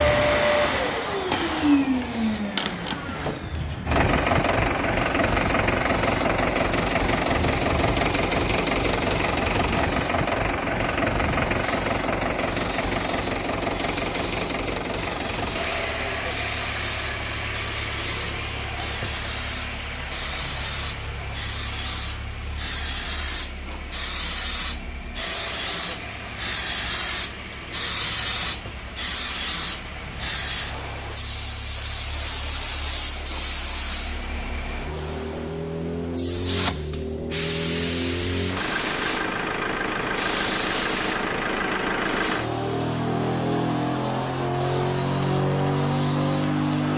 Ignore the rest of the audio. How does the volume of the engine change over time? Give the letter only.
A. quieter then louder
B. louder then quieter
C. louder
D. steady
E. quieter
A.